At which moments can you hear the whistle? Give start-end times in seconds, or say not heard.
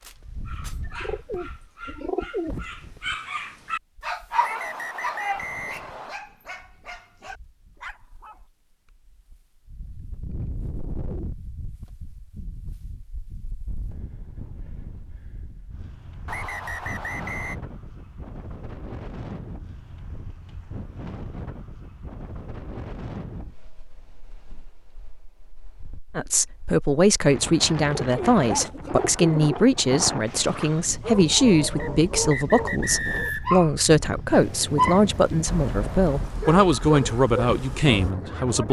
4.4-6.2, 16.2-17.6, 31.8-33.5.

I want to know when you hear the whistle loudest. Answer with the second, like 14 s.
33 s.